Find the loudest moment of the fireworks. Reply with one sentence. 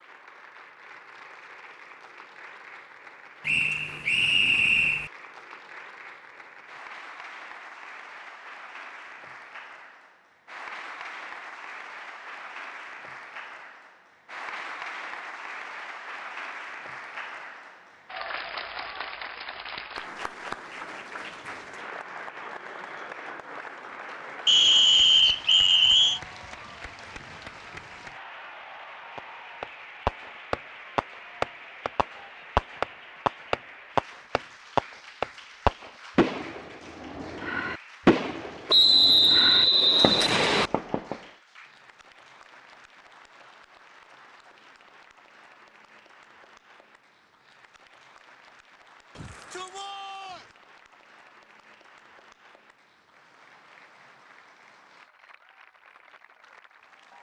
The loudest moment of the fireworks is at 38 seconds.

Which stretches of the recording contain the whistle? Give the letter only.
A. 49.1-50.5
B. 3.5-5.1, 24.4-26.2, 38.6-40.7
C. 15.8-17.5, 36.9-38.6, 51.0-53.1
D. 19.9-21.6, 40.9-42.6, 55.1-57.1
B.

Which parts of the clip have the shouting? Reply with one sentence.
The shouting can be heard from 49.1 to 50.5 s.